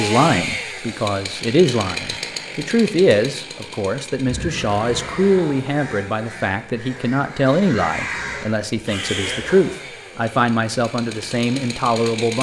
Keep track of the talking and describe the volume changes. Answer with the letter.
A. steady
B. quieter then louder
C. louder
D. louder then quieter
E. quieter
A.